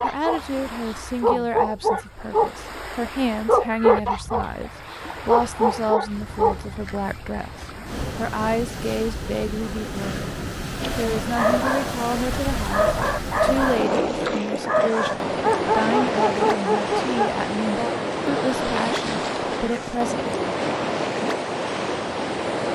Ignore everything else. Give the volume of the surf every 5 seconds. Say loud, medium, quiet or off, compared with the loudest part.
quiet, medium, loud, loud, loud.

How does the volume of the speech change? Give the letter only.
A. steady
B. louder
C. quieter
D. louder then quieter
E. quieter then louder
A.